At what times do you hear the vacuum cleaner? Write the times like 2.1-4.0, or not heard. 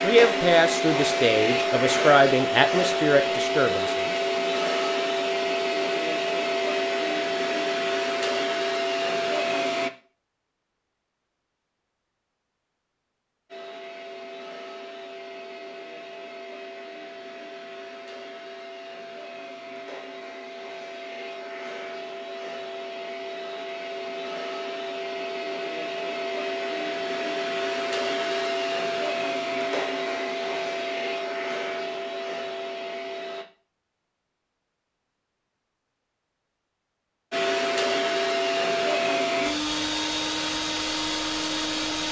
0.0-9.9, 13.4-33.5, 37.3-42.0.